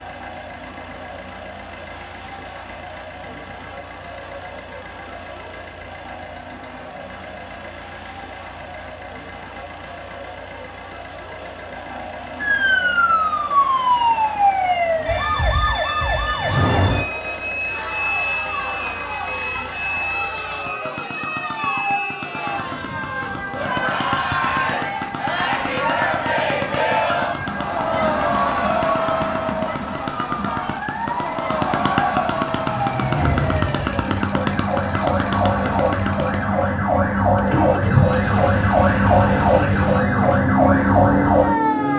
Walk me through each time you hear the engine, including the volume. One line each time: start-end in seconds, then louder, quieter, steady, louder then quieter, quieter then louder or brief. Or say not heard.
0.0-41.9 louder.